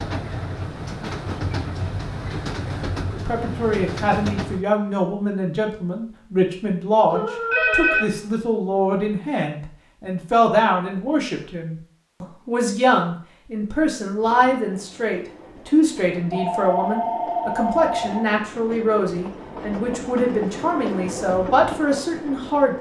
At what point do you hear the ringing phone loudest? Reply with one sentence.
The volume of the ringing phone peaks at 8 seconds.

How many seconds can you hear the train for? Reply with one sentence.
You can hear the train for 13 seconds altogether.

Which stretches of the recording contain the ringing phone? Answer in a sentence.
The ringing phone can be heard from 7.1 to 8.2 s and from 16.3 to 18.2 s.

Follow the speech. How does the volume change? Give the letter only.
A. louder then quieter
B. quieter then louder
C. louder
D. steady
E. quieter
D.